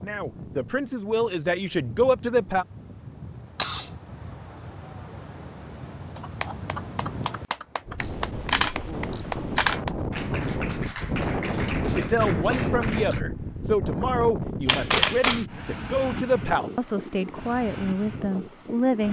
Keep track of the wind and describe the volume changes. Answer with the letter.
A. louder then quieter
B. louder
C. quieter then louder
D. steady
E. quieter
A.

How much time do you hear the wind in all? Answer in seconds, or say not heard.
19 s.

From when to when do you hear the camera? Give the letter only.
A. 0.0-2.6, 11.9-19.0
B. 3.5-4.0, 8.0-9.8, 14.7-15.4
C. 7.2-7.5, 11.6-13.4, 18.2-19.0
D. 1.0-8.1
B.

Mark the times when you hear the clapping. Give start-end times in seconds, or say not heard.
6.2-13.2.